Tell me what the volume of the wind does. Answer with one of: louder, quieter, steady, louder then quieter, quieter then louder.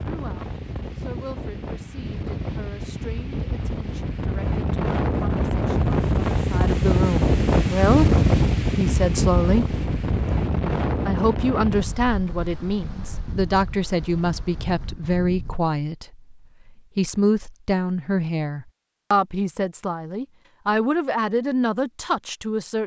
louder then quieter.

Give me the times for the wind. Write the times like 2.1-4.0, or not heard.
0.0-15.6.